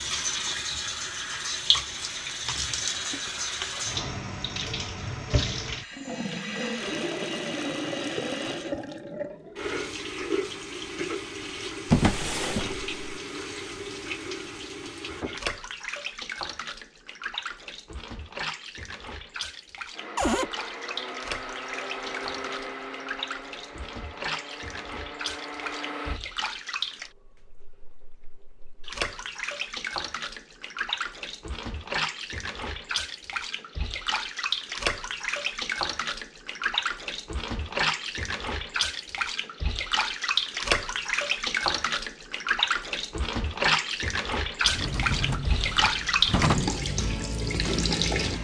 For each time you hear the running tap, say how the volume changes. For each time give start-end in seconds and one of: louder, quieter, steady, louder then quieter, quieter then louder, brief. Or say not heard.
0.0-48.3 quieter then louder.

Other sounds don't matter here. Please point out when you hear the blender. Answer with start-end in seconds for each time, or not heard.
19.9-26.2.